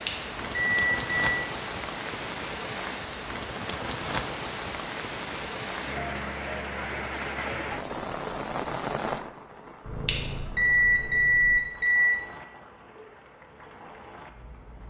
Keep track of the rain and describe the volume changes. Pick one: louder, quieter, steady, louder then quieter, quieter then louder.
quieter.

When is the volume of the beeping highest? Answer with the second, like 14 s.
11 s.